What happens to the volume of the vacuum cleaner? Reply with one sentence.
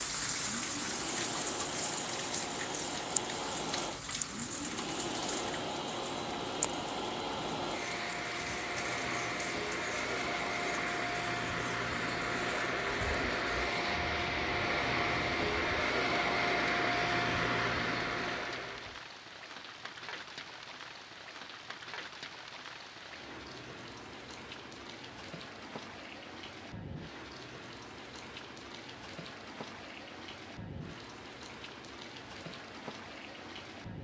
The loudness of the vacuum cleaner goes up.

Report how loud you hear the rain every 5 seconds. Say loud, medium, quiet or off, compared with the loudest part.
loud, medium, medium, medium, medium, medium, medium.